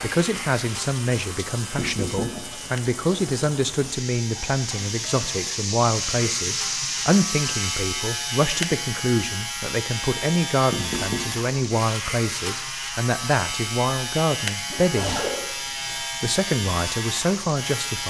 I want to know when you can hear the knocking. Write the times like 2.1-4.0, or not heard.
1.8-2.5, 10.7-11.3.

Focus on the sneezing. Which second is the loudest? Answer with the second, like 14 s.
15 s.